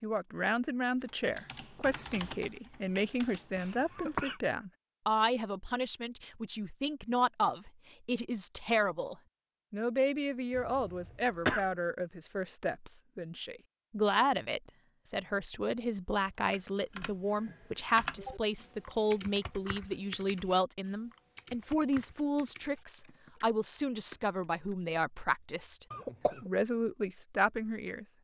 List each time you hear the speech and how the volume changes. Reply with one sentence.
The speech can be heard from 0.0 to 28.1 s, at a steady volume.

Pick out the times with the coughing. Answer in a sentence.
The coughing can be heard from 3.5 to 4.3 s, from 10.6 to 11.7 s and from 25.9 to 26.5 s.